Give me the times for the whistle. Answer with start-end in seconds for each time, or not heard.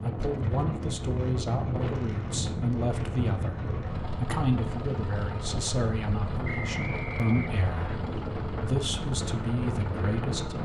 6.4-8.0.